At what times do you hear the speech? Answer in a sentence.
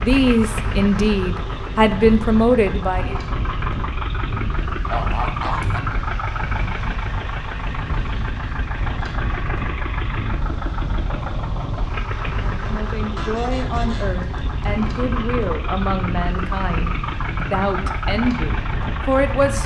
You can hear the speech from 0.0 to 3.1 s and from 12.6 to 19.6 s.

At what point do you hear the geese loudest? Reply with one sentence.
The loudest moment of the geese is at 5 seconds.